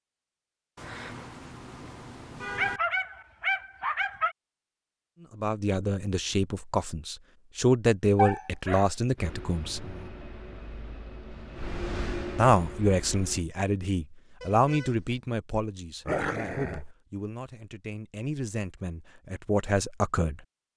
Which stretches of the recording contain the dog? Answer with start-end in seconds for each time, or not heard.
2.5-4.3, 8.2-10.1, 16.1-16.9.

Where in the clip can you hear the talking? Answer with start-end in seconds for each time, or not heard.
5.3-9.9, 12.3-20.4.